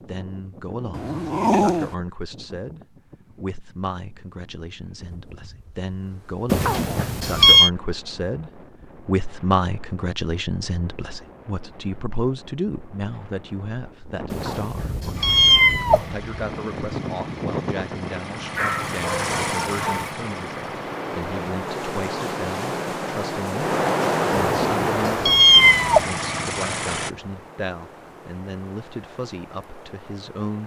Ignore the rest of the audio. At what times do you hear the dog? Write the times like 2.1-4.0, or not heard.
0.9-1.9, 18.6-20.1.